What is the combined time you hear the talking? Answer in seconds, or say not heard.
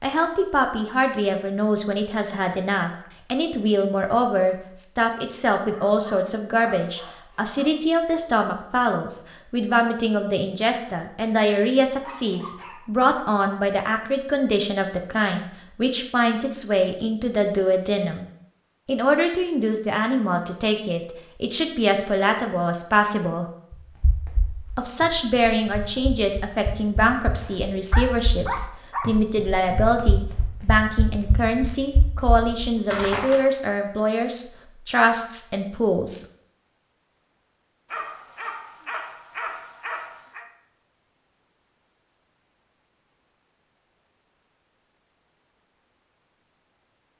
34 s.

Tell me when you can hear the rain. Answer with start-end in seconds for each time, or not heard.
not heard.